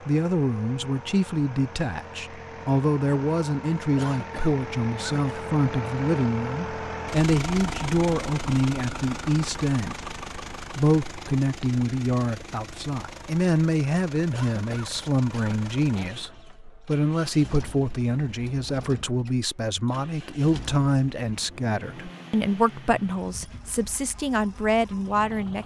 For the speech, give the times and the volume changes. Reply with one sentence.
The speech can be heard from 0.1 to 25.6 s, at a steady volume.